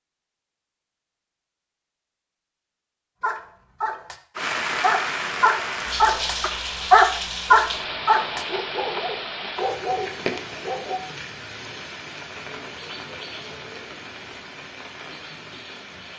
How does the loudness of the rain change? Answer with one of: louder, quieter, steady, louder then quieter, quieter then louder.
quieter.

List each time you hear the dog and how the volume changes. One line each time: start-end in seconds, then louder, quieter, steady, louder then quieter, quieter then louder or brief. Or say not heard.
3.2-11.0 louder then quieter.